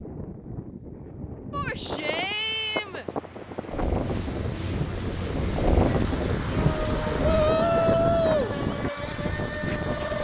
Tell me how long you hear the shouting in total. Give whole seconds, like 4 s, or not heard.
3 s.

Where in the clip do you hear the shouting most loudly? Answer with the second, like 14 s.
8 s.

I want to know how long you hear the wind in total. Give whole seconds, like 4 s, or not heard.
10 s.